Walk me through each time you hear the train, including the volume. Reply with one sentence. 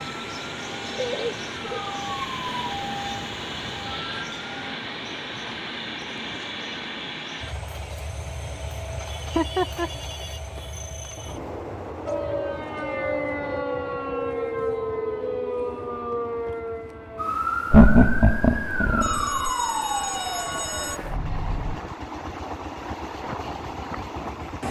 The train can be heard from 0.0 to 24.6 s, getting quieter then louder.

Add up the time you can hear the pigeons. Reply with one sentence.
You can't hear the pigeons here.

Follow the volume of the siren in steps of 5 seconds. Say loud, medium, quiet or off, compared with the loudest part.
medium, off, loud, loud, medium.